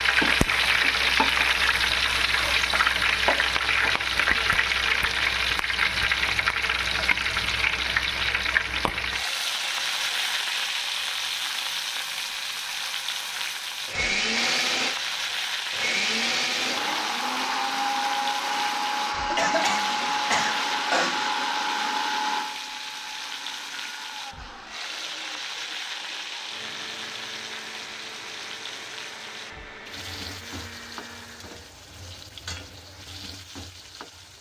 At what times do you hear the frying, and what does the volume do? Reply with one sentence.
The frying can be heard from 0.0 to 34.3 s, getting quieter.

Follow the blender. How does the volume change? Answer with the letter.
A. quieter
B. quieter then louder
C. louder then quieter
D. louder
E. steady
A.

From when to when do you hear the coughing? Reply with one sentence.
The coughing can be heard from 19.3 to 21.3 s.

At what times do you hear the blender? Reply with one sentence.
You can hear the blender from 13.8 to 31.7 s.